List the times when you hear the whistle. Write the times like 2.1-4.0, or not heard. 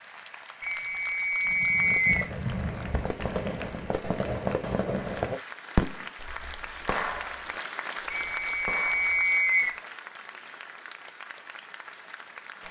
0.6-2.3, 8.1-9.8.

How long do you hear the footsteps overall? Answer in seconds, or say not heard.
not heard.